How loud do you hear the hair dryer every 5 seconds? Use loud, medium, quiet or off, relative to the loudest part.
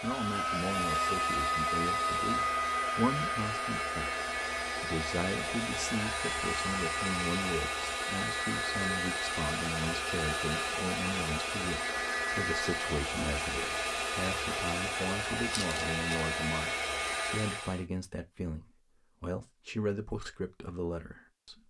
loud, loud, loud, loud, off.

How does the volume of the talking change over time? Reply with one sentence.
The loudness of the talking stays about the same.